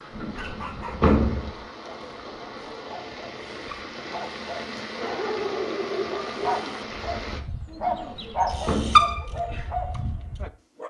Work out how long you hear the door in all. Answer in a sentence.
The door can be heard for 3 seconds in total.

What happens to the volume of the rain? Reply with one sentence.
The volume of the rain goes up.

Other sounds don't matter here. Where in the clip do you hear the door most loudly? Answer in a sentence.
The loudest moment of the door is at 1 second.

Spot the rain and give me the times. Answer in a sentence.
You can hear the rain from 0.0 to 7.4 s.